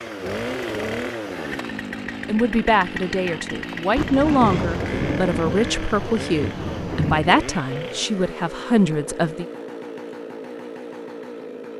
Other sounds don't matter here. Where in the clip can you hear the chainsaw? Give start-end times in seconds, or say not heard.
0.0-11.7.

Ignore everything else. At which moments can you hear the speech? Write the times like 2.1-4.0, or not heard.
2.2-9.4.